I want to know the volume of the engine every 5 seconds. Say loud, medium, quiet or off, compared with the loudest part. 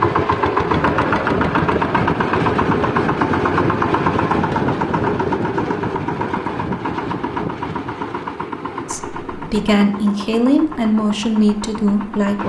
loud, medium, quiet.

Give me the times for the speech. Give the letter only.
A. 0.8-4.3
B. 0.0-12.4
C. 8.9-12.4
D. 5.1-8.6
C.